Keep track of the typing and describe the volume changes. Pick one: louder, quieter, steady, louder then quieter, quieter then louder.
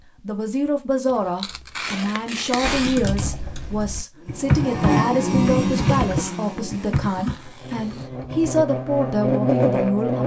louder then quieter.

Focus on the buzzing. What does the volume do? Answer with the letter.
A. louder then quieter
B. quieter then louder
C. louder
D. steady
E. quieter
B.